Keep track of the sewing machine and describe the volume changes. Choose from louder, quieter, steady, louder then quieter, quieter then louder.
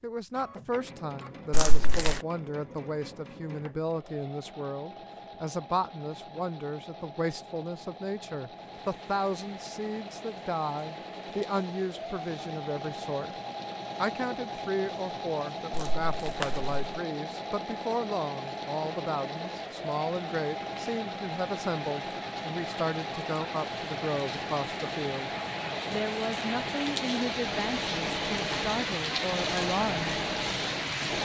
louder.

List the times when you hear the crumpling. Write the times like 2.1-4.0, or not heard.
1.5-2.2, 15.7-16.8.